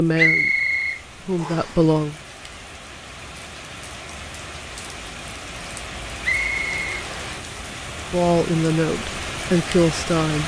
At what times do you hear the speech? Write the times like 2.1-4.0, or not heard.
0.0-2.1, 8.1-10.4.